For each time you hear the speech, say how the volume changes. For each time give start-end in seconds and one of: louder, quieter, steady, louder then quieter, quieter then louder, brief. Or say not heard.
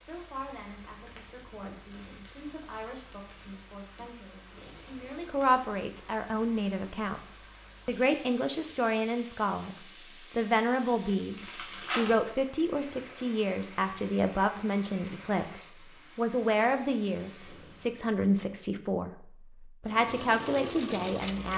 0.0-21.5 louder.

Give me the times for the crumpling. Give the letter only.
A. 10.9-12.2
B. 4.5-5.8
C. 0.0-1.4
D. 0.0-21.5
A.